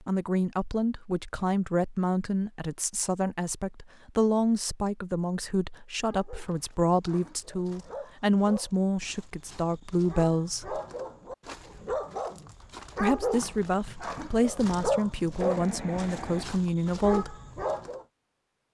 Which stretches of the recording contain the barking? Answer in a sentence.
You can hear the barking from 6.0 to 18.1 s.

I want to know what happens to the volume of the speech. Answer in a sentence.
The loudness of the speech stays about the same.